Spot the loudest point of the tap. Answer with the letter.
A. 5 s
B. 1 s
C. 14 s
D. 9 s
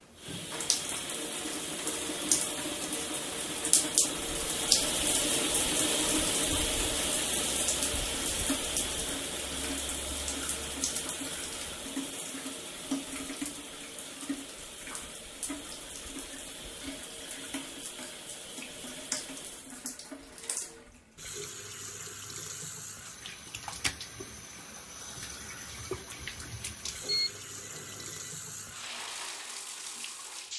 A.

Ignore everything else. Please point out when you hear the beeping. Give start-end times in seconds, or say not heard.
27.0-28.3.